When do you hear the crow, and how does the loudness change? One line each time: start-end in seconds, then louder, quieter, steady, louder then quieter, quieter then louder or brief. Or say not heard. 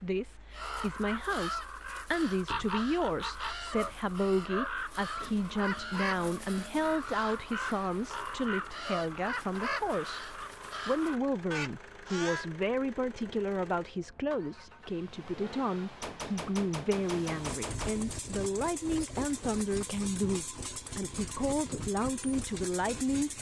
0.5-12.5 steady.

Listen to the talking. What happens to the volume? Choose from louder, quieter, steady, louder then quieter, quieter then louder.
steady.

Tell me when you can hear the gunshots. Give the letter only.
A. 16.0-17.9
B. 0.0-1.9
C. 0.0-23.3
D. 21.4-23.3
A.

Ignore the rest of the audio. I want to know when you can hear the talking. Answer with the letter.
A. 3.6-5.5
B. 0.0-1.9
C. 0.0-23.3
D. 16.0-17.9
C.